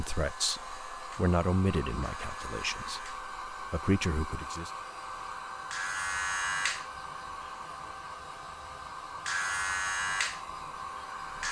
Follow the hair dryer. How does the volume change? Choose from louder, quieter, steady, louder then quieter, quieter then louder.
steady.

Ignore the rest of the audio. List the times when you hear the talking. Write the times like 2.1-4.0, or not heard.
0.0-4.7.